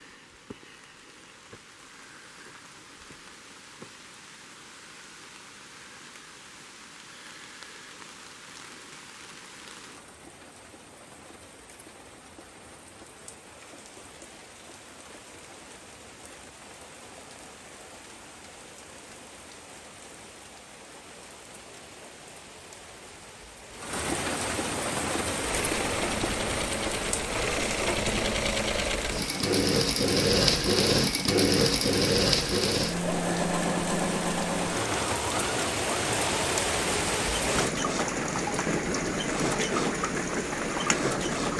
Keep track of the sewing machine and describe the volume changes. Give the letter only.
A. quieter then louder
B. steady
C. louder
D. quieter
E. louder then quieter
E.